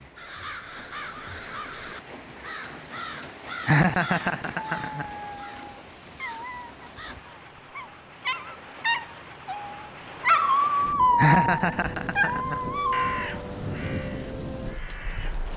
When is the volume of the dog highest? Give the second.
10 s.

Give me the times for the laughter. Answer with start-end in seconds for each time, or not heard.
3.6-5.0, 11.2-12.6.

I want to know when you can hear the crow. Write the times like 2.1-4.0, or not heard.
0.1-7.2, 12.5-15.5.